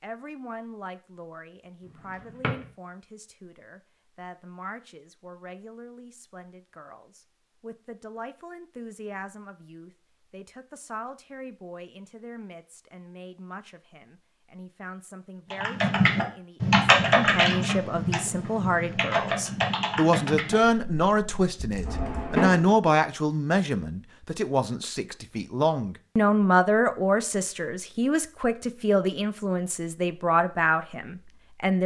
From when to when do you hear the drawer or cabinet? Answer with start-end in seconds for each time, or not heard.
2.2-2.6, 21.9-22.7.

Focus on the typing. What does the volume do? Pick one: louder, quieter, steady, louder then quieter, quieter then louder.
quieter.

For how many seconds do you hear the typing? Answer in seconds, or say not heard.
7 s.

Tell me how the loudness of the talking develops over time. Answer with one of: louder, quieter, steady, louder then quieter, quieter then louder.
louder.